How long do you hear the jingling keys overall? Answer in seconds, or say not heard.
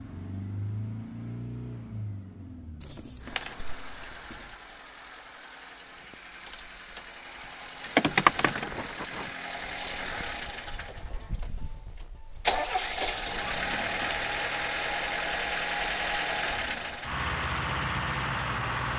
3 s.